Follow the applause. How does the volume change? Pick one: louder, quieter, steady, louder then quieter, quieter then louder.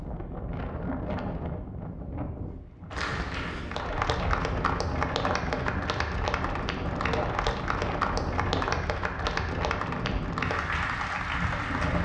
steady.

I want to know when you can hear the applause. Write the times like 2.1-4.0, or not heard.
2.9-12.0.